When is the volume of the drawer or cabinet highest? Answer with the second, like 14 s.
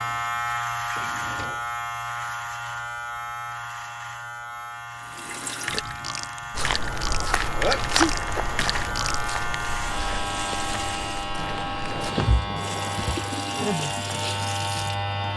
12 s.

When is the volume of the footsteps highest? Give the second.
8 s.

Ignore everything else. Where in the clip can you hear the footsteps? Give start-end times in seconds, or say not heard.
6.5-12.4.